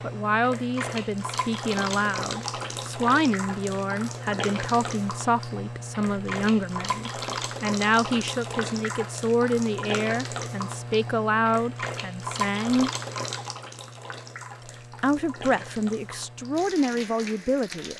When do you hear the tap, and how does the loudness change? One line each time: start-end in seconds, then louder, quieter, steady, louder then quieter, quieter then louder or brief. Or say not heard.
0.0-17.9 quieter.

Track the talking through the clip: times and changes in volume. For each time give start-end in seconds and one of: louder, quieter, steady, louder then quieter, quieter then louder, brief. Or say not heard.
0.0-12.9 steady
15.0-17.9 brief.